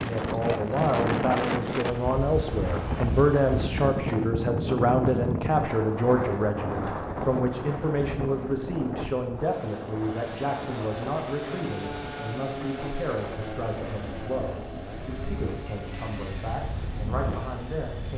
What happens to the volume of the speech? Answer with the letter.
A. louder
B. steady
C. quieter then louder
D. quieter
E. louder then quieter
D.